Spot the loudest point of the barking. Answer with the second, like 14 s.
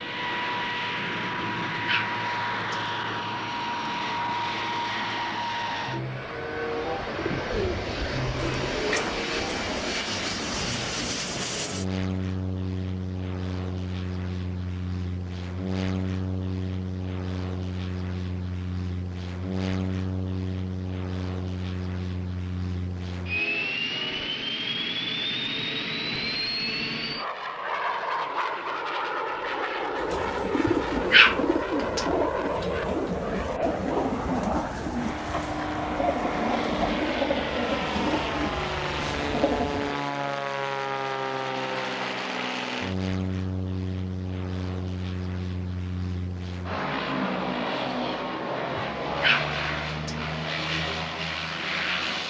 31 s.